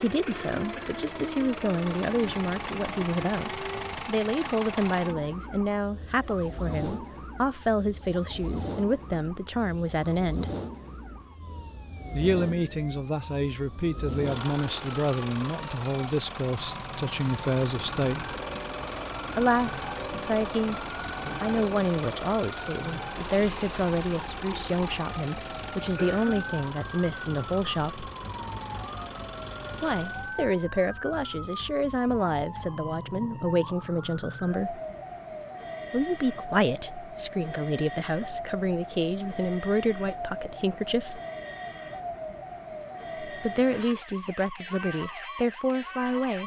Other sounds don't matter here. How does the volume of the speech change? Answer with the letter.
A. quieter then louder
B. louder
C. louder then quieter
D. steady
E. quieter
D.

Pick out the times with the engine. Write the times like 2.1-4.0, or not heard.
0.0-30.4.